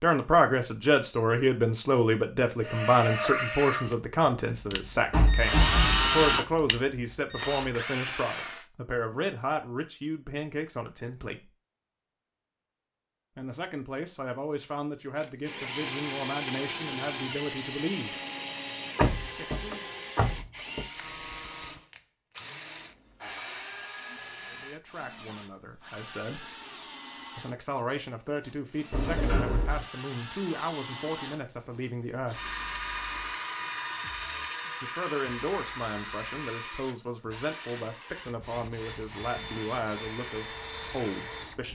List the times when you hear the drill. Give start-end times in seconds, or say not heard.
2.6-8.7, 15.2-41.7.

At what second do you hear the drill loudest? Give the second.
6 s.